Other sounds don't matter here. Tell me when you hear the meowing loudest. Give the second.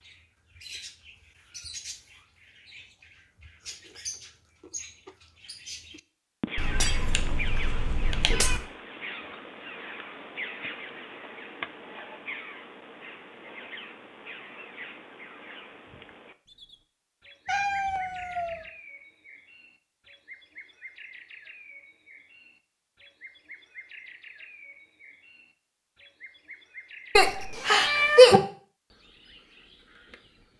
28 s.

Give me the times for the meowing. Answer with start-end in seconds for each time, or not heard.
6.5-8.6, 17.4-18.6, 27.1-28.4.